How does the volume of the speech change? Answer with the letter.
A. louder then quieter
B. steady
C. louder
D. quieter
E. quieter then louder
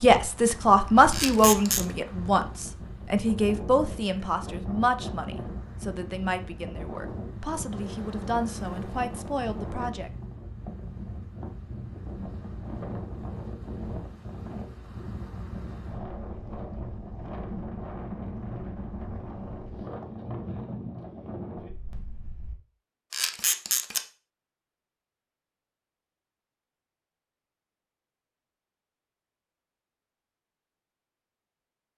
D.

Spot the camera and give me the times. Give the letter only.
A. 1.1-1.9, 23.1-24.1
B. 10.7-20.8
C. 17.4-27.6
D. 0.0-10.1
A.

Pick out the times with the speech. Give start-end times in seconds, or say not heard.
0.0-10.1.